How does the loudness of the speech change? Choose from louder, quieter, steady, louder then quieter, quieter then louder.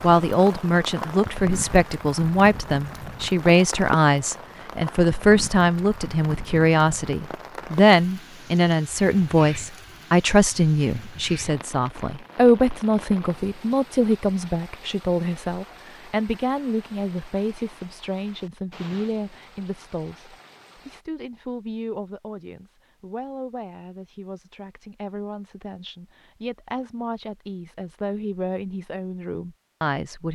quieter.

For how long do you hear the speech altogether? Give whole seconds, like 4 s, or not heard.
30 s.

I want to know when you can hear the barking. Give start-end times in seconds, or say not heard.
not heard.